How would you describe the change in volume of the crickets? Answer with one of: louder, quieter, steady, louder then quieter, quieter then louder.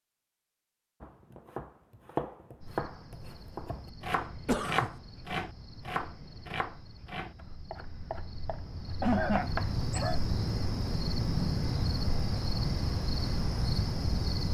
louder.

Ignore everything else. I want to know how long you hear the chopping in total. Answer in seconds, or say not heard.
9 s.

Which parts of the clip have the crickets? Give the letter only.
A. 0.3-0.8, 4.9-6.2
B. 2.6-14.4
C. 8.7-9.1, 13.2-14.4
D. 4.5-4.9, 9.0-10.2
B.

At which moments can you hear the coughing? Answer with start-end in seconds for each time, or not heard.
4.5-4.9, 9.0-10.2.